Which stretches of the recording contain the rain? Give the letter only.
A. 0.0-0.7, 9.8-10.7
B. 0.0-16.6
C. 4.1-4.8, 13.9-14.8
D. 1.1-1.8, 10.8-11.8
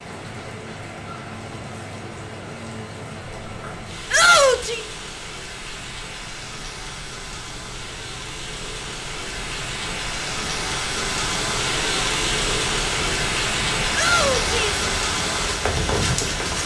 B.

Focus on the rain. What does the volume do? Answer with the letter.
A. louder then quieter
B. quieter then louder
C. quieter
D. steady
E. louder
E.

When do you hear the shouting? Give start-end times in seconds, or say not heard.
4.1-4.8, 13.9-14.8.